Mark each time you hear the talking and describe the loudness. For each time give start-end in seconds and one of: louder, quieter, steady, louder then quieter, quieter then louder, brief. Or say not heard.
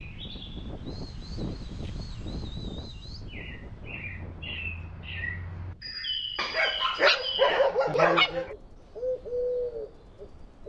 not heard.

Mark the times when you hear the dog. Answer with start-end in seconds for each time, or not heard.
6.3-8.6.